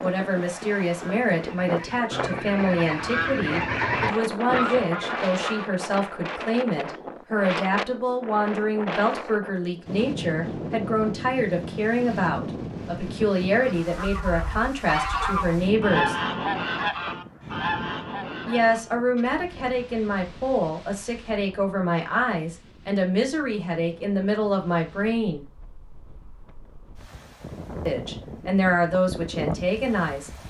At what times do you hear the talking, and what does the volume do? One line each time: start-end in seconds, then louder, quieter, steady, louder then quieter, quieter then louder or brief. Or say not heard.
0.0-16.1 steady
18.4-25.4 steady
27.9-30.4 brief.